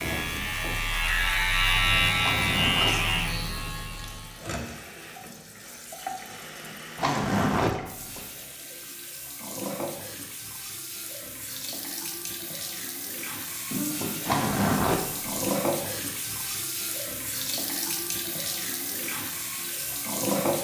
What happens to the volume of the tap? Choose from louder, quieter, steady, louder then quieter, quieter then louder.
louder.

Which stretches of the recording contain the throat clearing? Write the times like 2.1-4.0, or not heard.
13.7-14.5.